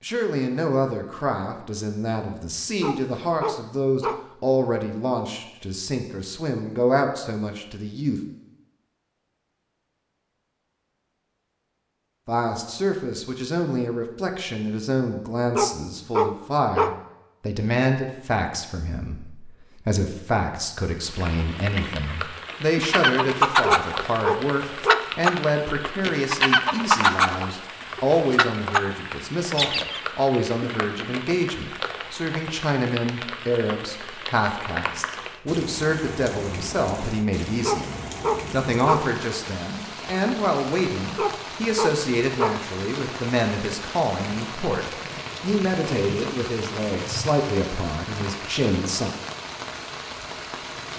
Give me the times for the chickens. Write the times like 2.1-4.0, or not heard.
22.8-28.9, 29.6-30.0.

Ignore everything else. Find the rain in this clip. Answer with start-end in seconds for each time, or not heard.
21.0-50.9.